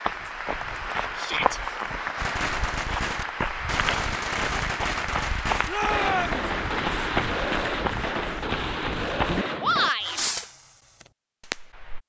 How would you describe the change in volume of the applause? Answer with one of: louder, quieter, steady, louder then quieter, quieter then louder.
steady.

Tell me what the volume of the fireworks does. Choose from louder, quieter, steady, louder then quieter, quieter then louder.
steady.